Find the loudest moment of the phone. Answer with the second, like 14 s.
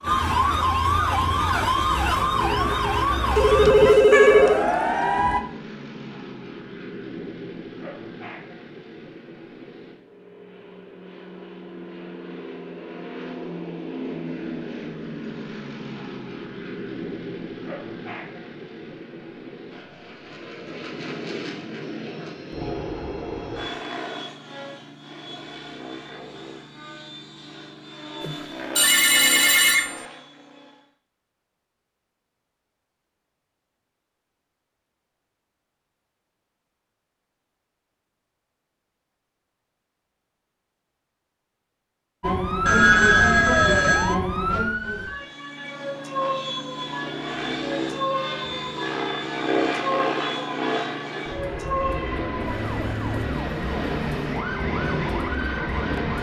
4 s.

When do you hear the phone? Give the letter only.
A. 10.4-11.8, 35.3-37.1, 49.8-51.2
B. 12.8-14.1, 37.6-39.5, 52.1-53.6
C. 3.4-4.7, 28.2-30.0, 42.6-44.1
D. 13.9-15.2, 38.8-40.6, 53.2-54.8
C.